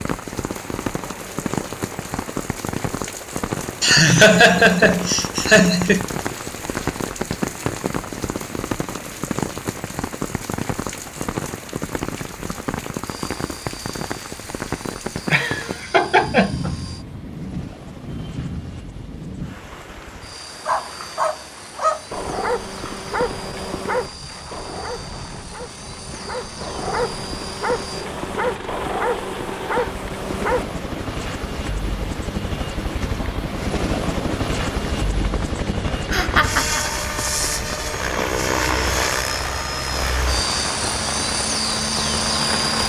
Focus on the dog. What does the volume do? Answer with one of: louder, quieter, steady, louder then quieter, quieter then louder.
quieter then louder.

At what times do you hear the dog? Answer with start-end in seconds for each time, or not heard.
20.6-30.6.